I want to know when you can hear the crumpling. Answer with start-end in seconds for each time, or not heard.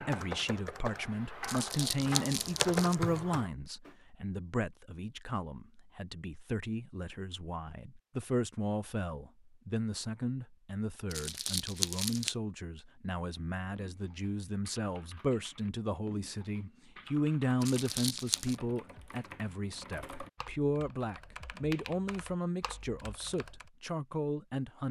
1.4-3.0, 11.1-12.3, 17.6-18.6.